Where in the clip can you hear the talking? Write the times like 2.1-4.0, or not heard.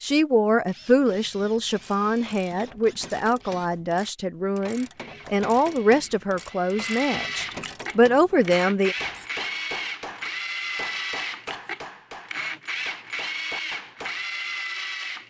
0.0-8.9.